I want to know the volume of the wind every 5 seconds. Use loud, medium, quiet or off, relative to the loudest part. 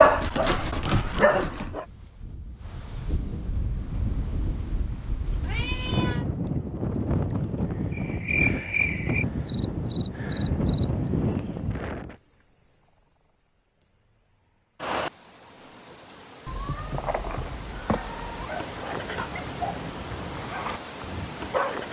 medium, loud, loud, off, off.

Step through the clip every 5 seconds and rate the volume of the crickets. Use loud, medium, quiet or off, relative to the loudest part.
off, loud, loud, medium, medium.